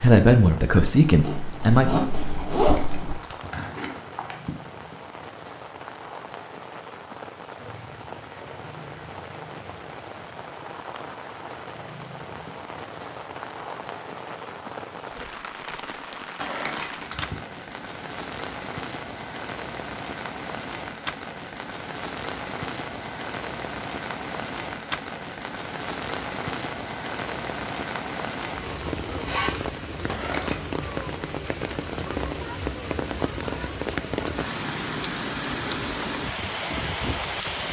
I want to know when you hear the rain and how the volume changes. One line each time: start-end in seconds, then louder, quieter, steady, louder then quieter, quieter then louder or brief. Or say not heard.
0.0-37.6 louder.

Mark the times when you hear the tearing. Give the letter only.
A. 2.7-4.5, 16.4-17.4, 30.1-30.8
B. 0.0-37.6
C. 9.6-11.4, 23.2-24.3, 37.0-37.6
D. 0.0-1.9
A.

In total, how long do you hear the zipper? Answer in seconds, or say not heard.
3 s.